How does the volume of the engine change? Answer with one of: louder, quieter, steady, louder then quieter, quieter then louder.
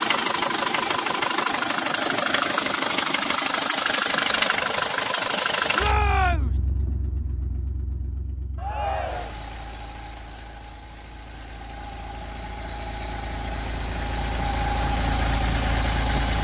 quieter then louder.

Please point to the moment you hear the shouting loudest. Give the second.
6 s.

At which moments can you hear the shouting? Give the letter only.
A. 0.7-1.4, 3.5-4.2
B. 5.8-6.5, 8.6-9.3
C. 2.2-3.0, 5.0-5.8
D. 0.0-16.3
B.